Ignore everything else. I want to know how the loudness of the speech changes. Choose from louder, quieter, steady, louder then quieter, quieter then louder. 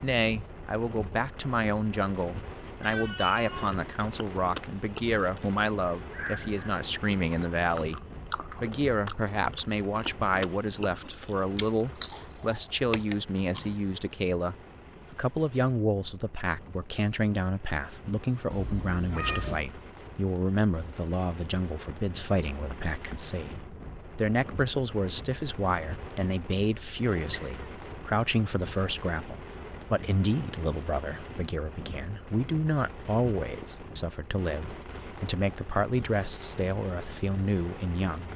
steady.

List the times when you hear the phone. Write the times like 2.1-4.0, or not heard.
not heard.